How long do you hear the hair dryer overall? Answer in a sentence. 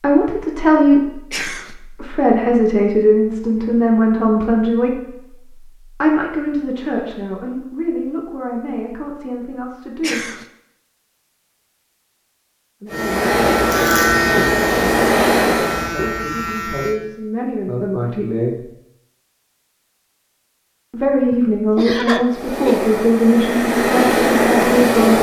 The hair dryer can be heard for 6 seconds in total.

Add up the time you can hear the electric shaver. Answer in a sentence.
The electric shaver can be heard for 4 seconds in total.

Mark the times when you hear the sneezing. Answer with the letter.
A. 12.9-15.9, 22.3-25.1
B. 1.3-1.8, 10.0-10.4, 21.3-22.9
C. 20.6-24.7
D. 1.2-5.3
B.